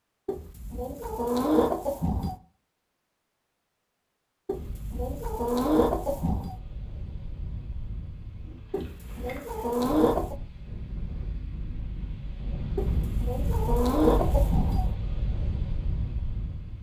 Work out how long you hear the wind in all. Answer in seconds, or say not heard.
12 s.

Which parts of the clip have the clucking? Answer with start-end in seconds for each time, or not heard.
0.2-2.4, 4.5-6.5, 8.7-10.3, 12.8-14.9.